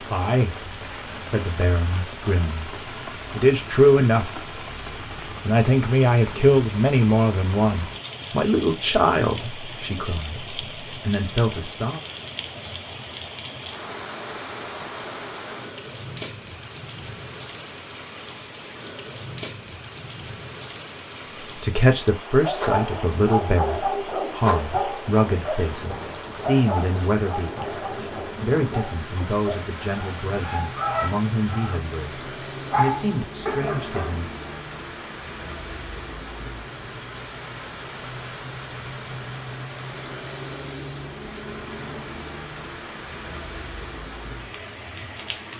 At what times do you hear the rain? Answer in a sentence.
The rain can be heard from 0.0 to 45.5 s.